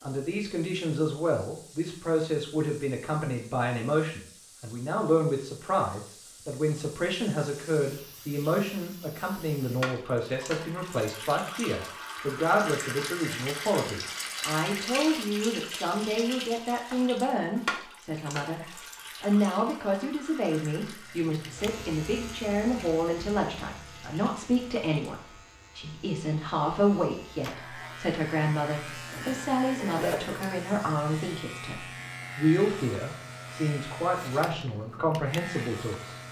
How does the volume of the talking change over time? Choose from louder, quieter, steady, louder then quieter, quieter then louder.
steady.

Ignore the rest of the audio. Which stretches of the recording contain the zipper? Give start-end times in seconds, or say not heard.
29.1-30.6.